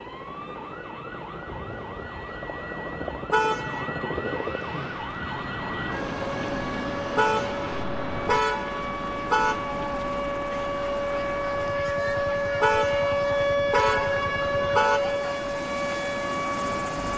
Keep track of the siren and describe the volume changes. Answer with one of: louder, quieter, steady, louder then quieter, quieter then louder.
louder.